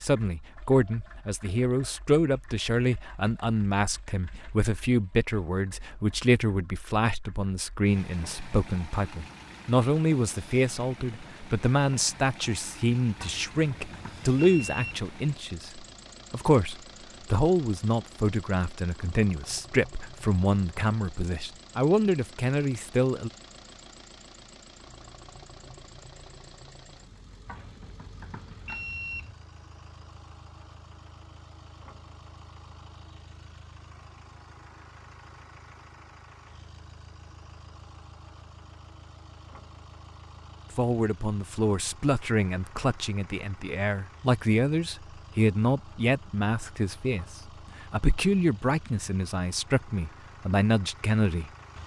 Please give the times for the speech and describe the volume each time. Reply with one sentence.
The speech can be heard from 0.0 to 23.3 s, at a steady volume; and from 40.8 to 51.8 s, at a steady volume.